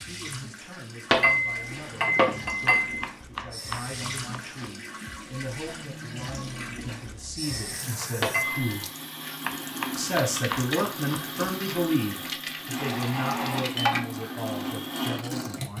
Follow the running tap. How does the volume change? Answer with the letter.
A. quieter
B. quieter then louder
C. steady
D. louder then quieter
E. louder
E.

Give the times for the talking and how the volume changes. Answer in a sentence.
You can hear the talking from 0.0 to 8.8 s, getting louder; and from 9.9 to 15.7 s, getting quieter.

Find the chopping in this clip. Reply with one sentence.
You can hear the chopping from 2.8 to 4.8 s and from 9.4 to 11.8 s.